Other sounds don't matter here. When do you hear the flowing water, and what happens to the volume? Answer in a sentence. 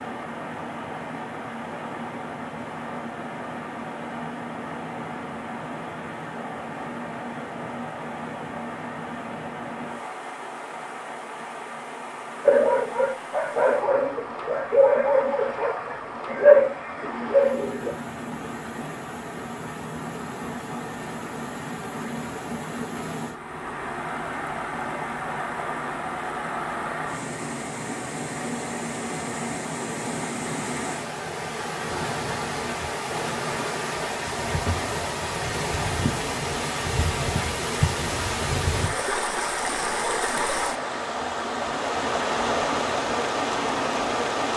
The flowing water can be heard from 0.0 to 44.5 s, getting louder.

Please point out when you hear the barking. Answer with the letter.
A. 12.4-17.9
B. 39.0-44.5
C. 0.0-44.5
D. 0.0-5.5
A.